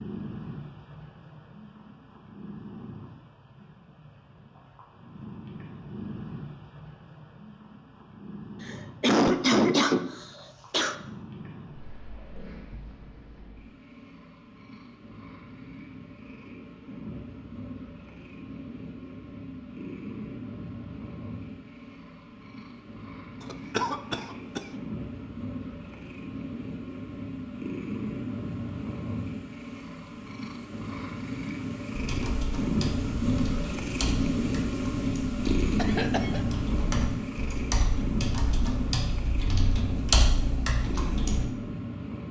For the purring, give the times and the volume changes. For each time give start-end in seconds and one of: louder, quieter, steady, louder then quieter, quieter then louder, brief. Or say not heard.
0.0-42.2 louder.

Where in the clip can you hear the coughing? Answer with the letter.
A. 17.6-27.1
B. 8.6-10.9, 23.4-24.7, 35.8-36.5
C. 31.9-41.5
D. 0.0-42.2
B.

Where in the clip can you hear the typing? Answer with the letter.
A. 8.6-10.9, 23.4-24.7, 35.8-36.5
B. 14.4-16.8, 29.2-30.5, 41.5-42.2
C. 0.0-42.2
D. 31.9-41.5
D.